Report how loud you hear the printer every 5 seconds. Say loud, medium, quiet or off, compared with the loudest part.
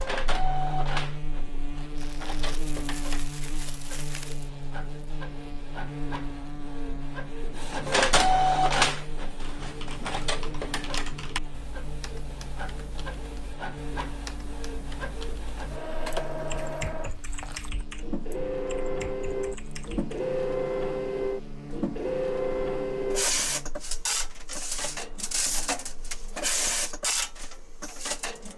medium, loud, medium, medium, loud, loud.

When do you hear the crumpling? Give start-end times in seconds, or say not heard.
1.9-4.5.